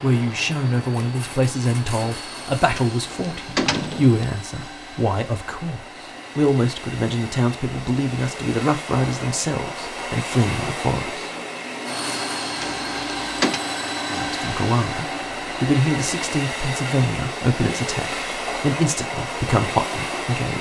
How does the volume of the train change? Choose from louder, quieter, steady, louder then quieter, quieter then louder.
louder.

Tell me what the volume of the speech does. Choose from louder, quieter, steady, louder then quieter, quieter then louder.
steady.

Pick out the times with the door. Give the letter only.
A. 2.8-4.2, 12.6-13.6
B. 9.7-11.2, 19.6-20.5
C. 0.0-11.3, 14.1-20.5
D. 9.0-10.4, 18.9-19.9
A.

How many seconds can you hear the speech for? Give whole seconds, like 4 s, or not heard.
18 s.